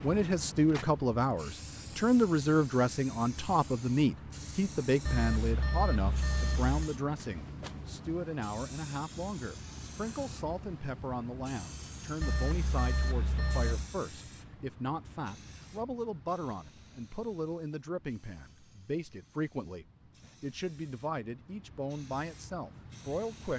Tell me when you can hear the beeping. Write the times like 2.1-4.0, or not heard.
5.0-6.9, 12.2-13.9.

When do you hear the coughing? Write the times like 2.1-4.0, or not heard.
not heard.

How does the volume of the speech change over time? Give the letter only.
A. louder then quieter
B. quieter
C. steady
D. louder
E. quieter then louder
B.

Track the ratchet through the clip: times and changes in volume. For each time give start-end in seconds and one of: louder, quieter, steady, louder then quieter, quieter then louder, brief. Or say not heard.
not heard.